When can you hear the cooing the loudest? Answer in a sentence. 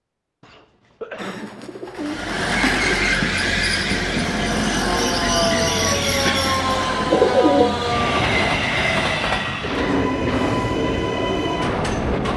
The volume of the cooing peaks at 7 seconds.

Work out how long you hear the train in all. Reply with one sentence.
You can hear the train for 10 seconds altogether.